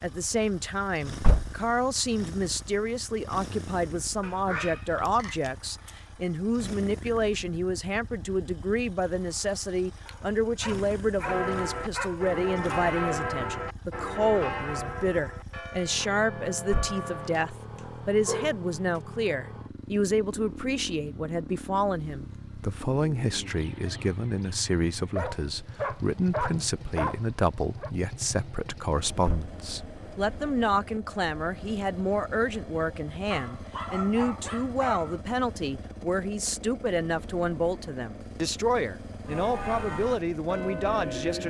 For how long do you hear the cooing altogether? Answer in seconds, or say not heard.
not heard.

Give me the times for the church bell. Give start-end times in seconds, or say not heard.
11.2-17.5, 39.2-41.4.